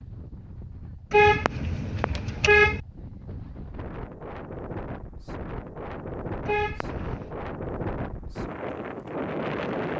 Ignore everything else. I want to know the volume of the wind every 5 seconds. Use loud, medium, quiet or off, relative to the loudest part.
medium, loud.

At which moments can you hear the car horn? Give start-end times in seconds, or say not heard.
1.1-2.8, 6.5-7.3.